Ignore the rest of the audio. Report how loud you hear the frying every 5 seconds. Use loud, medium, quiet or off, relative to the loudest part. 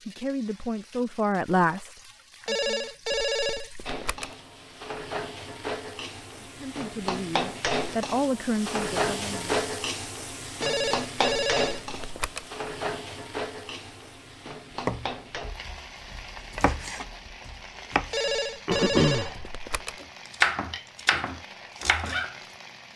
quiet, loud, loud, medium, quiet.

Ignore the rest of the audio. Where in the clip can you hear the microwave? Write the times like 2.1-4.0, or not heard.
not heard.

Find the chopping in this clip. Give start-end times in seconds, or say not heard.
14.8-22.4.